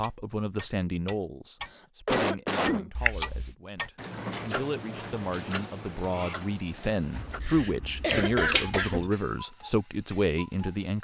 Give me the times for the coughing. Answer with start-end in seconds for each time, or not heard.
1.6-2.9, 7.4-9.2.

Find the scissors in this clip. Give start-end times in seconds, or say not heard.
3.0-3.5, 7.2-9.1.